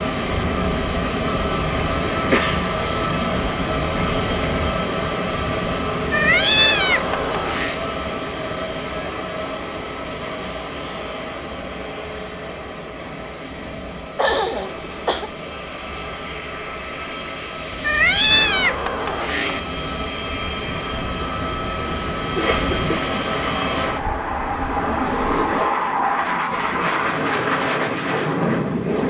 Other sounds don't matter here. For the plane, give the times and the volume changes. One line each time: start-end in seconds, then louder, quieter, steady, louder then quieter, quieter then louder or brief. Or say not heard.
0.0-29.0 quieter then louder.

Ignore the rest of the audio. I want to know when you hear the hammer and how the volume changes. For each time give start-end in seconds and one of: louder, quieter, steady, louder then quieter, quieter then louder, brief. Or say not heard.
not heard.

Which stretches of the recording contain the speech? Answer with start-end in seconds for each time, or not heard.
not heard.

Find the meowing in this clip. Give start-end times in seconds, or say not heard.
6.1-7.8, 17.8-19.6.